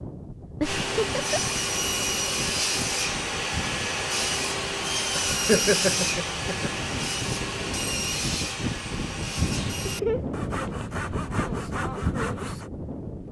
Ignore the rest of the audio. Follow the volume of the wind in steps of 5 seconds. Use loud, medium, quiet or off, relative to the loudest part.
medium, loud, loud.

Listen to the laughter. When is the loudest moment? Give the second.
6 s.